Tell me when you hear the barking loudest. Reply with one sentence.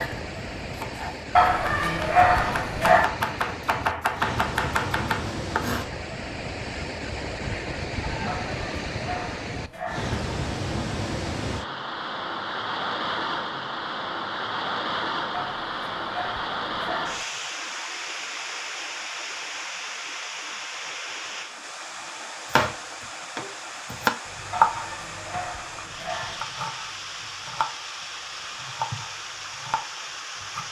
The volume of the barking peaks at 2 seconds.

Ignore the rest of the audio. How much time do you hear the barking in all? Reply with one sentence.
You can hear the barking for 7 seconds altogether.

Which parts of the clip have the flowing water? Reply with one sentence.
The flowing water can be heard from 0.0 to 30.6 s.